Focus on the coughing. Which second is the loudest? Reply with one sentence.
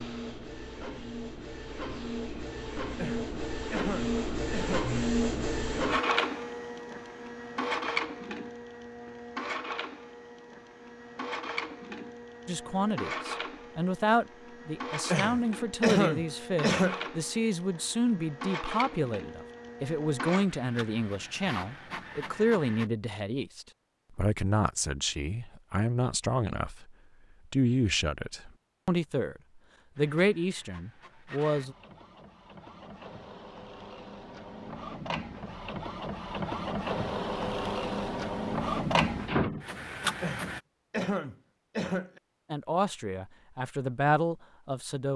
The volume of the coughing peaks at 16 seconds.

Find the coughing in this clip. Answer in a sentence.
The coughing can be heard from 3.0 to 4.9 s, from 15.1 to 17.1 s and from 40.2 to 42.2 s.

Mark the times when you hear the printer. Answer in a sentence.
The printer can be heard from 0.0 to 22.9 s and from 29.9 to 40.6 s.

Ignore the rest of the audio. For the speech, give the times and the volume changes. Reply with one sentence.
You can hear the speech from 12.4 to 31.8 s, at a steady volume; and briefly from 42.5 to 45.1 s.